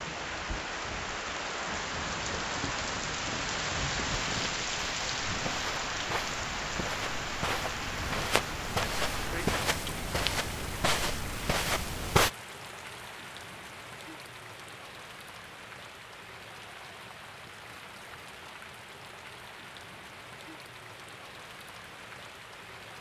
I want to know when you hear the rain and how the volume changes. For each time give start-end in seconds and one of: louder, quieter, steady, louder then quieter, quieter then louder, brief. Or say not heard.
0.0-22.9 quieter.